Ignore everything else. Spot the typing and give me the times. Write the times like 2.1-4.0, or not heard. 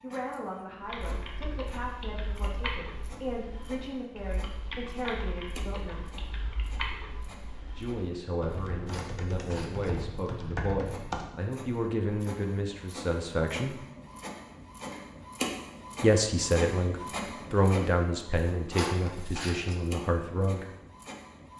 0.8-11.3.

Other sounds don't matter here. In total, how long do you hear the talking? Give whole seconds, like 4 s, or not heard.
17 s.